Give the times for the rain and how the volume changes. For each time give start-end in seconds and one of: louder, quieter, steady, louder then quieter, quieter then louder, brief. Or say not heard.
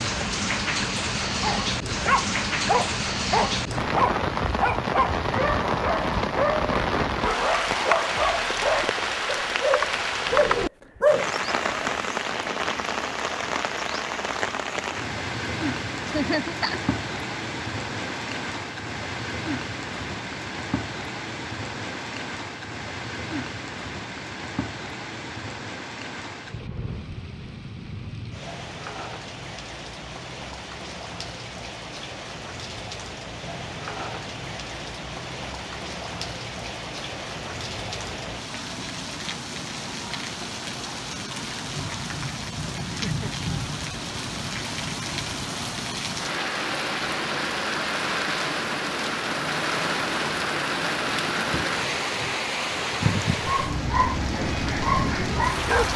0.0-55.9 quieter then louder.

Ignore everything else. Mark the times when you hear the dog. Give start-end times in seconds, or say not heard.
1.4-11.8, 53.4-55.9.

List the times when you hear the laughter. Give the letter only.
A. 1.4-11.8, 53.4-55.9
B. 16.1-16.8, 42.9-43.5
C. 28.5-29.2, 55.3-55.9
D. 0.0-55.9
B.